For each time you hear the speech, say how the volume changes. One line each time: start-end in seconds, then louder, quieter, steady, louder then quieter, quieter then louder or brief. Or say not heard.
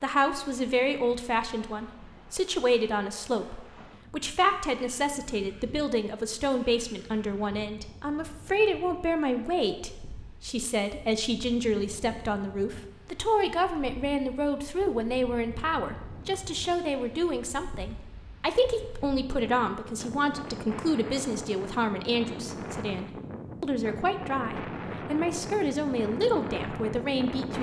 0.0-27.5 steady.